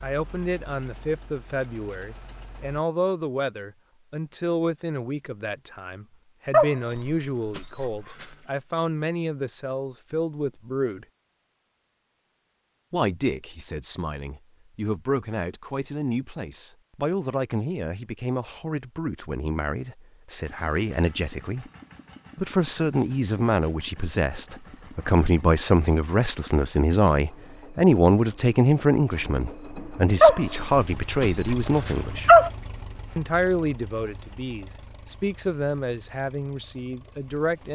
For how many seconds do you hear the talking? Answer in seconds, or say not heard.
34 s.